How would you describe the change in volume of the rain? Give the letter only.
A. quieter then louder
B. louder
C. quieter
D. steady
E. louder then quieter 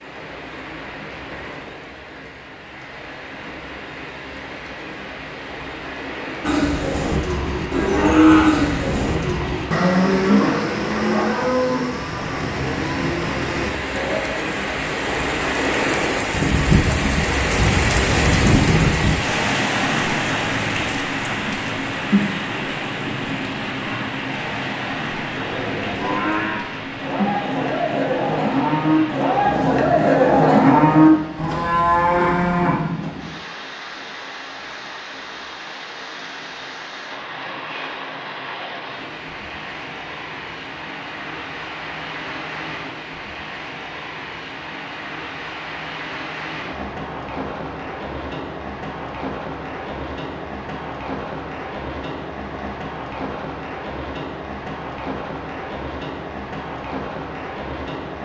E.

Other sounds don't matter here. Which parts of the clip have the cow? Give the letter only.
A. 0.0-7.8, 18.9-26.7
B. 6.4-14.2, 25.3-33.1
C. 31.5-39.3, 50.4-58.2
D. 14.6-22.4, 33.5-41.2
B.